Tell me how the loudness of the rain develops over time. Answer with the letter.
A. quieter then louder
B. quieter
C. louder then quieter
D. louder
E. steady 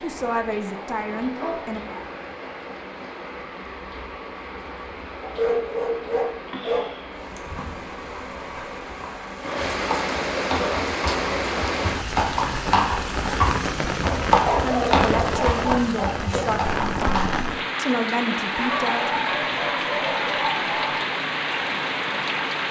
D.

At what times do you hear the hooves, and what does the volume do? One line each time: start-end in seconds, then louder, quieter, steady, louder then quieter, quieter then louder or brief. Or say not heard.
7.2-17.4 louder then quieter.